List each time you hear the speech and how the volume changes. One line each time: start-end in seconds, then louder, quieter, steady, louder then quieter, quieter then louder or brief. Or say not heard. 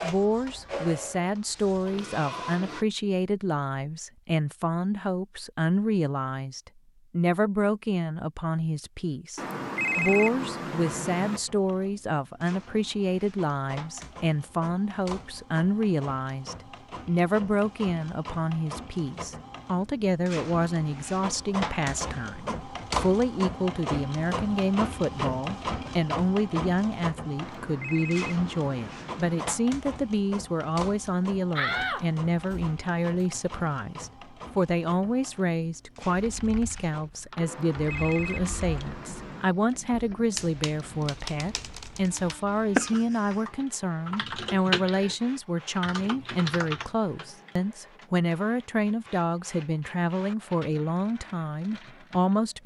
0.0-52.6 steady.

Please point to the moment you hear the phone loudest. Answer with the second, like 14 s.
10 s.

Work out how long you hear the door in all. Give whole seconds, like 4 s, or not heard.
2 s.